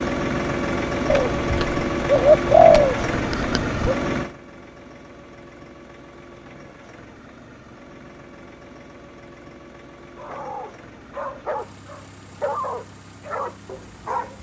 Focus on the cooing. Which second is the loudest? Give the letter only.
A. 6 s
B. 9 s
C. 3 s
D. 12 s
C.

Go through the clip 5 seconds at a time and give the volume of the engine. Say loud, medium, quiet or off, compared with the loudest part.
loud, quiet, quiet.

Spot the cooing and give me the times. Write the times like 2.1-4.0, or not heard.
1.1-3.9.